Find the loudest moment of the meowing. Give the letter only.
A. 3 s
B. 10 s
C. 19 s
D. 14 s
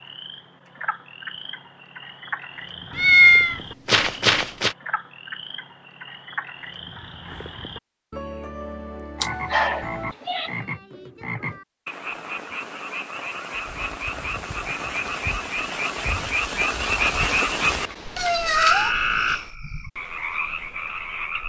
A.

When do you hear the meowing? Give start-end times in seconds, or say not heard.
3.0-4.8, 9.2-10.5, 17.6-19.4.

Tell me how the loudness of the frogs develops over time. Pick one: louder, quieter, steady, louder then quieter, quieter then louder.
louder.